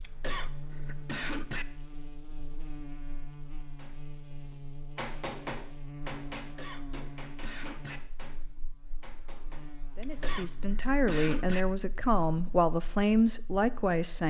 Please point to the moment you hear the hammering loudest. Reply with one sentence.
The loudest moment of the hammering is at 5 seconds.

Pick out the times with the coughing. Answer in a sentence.
The coughing can be heard from 0.0 to 1.6 s, from 6.3 to 8.0 s and from 10.0 to 11.7 s.